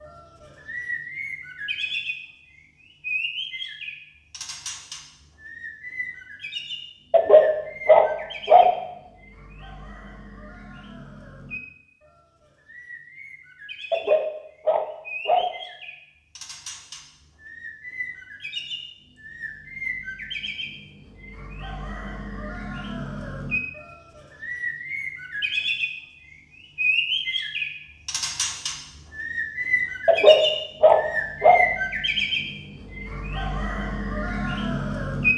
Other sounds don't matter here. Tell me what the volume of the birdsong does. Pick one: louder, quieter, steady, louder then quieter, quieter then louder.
quieter then louder.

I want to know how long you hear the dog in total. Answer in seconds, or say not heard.
5 s.